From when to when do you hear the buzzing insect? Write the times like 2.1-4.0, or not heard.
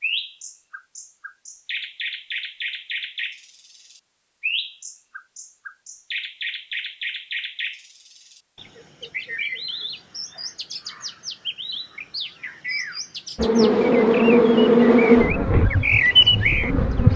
13.3-17.1.